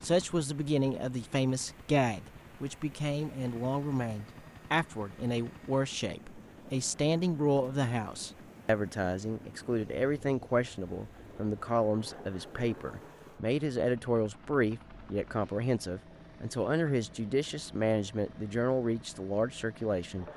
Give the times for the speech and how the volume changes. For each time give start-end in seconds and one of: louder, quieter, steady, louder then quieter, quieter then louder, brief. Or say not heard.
0.0-20.2 steady.